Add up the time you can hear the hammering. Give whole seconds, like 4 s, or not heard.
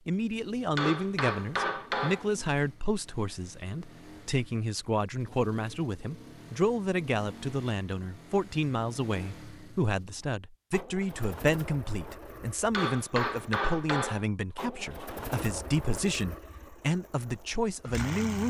3 s.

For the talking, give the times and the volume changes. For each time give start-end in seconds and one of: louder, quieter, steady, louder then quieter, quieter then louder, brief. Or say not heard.
0.1-18.4 steady.